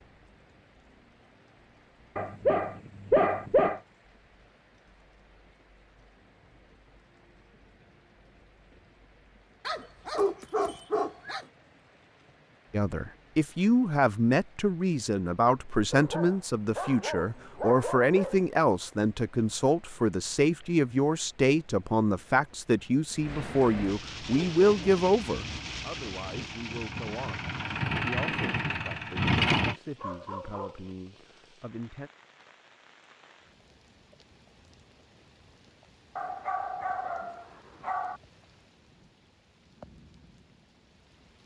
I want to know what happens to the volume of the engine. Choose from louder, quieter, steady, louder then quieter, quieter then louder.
louder.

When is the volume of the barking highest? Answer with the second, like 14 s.
3 s.